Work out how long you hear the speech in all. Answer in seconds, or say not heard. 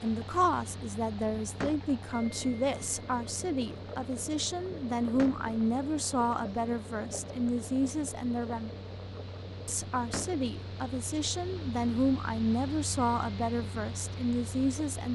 14 s.